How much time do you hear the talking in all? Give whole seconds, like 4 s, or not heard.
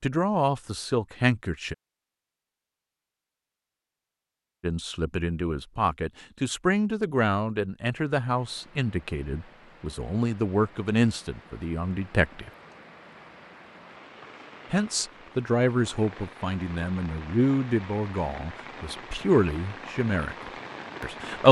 16 s.